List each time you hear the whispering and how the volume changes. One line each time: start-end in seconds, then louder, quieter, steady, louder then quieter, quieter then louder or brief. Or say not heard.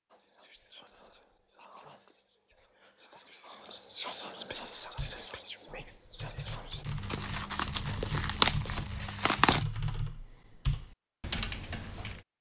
0.1-6.8 louder then quieter.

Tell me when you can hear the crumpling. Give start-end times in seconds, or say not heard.
6.8-9.7.